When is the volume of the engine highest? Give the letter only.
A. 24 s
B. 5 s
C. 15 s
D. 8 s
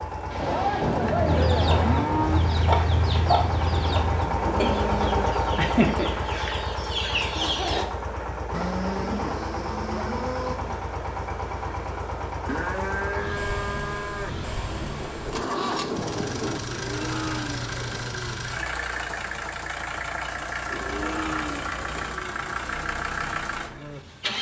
B.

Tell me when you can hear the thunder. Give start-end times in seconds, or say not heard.
0.3-4.1, 14.7-16.6.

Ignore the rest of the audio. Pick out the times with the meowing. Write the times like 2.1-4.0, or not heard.
not heard.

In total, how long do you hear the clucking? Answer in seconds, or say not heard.
7 s.